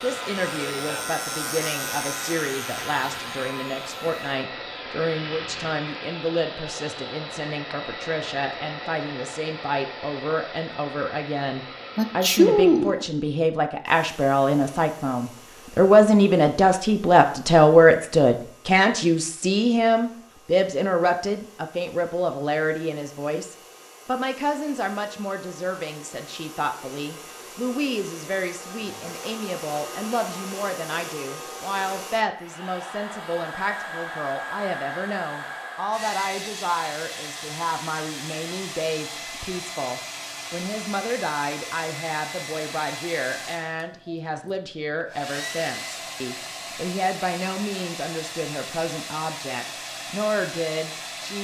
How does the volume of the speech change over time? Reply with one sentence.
The volume of the speech goes up, then down.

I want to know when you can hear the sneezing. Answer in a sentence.
The sneezing can be heard from 11.9 to 13.1 s.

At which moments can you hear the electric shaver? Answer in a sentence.
You can hear the electric shaver from 0.0 to 4.5 s.